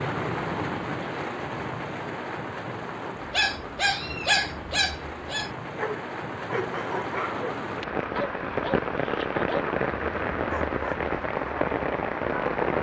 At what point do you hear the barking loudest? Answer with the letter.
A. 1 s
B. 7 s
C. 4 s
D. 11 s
C.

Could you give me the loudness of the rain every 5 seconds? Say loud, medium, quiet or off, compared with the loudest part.
medium, loud, loud.